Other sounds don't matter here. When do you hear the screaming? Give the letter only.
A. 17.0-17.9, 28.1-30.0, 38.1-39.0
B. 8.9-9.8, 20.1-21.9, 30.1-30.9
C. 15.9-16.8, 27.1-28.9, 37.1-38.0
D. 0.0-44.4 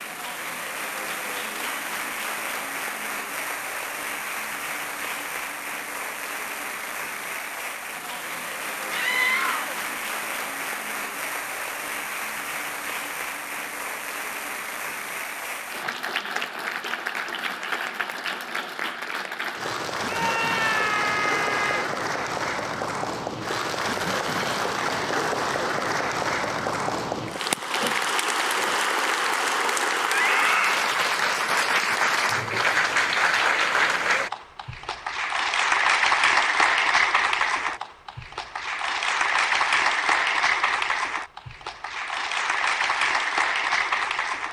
B.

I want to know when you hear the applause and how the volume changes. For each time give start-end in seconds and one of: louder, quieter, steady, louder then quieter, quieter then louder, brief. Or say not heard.
0.0-44.4 louder.